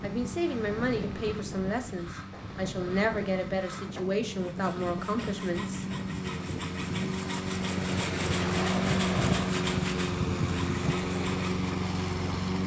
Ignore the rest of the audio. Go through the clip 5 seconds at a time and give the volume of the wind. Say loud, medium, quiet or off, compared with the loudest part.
medium, loud, loud.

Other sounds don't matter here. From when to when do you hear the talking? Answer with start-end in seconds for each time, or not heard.
0.0-5.8.